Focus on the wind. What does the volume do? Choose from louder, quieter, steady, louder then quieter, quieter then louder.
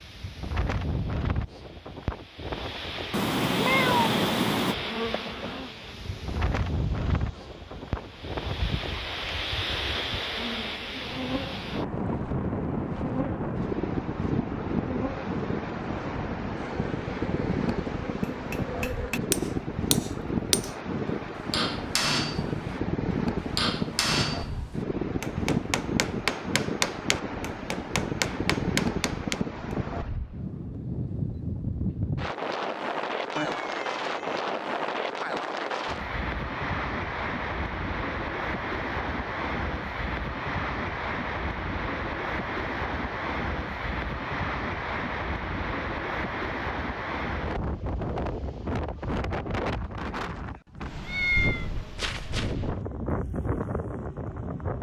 steady.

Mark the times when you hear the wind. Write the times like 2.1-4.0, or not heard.
0.0-54.7.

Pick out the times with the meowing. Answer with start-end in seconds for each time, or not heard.
3.1-4.8, 33.4-34.4, 51.0-52.5.